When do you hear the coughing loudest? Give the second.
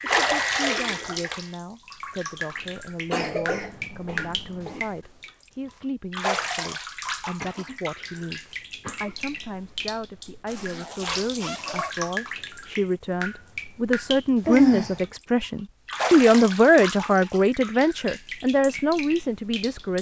15 s.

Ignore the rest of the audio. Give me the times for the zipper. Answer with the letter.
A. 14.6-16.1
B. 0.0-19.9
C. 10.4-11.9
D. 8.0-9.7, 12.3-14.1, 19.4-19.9
C.